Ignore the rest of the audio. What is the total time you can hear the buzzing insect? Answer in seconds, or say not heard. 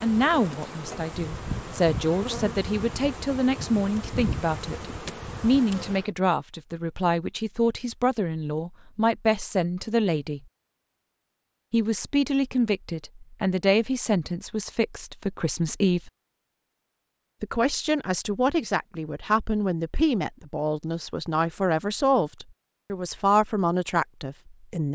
6 s.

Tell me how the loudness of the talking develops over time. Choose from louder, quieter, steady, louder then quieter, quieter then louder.
steady.